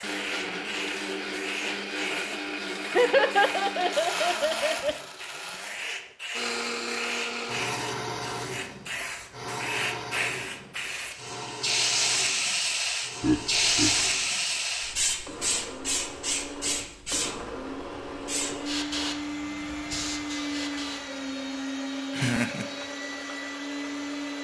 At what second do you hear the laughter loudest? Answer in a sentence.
The loudest moment of the laughter is at 3 seconds.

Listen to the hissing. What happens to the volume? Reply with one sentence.
The volume of the hissing goes up, then down.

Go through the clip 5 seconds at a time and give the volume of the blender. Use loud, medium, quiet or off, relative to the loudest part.
loud, loud, medium, loud, loud.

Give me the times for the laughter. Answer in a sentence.
You can hear the laughter from 2.9 to 5.0 s, from 13.2 to 14.0 s and from 22.1 to 22.6 s.